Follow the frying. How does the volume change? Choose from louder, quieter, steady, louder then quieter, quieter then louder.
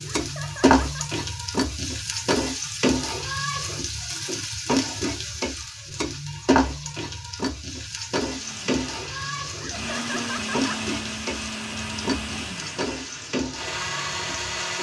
quieter.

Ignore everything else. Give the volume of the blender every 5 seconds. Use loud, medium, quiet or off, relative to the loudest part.
off, medium, loud.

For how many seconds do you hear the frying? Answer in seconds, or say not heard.
15 s.